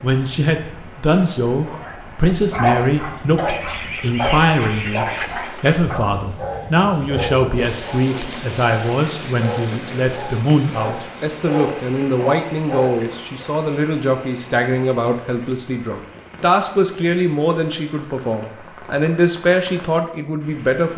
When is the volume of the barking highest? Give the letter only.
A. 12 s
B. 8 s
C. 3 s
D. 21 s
C.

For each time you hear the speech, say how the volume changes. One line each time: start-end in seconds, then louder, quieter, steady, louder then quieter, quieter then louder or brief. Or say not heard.
0.0-20.9 steady.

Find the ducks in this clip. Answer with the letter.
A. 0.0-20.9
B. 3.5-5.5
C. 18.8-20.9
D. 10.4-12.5
B.